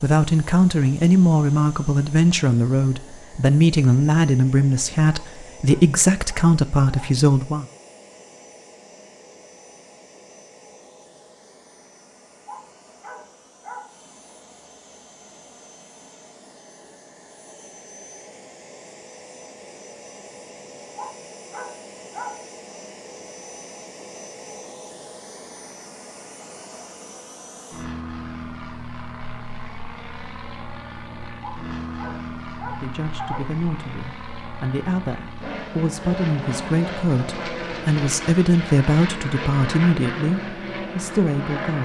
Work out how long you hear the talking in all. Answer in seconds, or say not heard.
17 s.